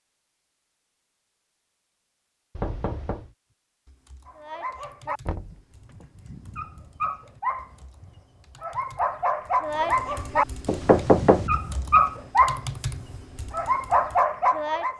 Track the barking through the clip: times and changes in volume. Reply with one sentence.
You can hear the barking from 4.2 to 14.9 s, getting louder.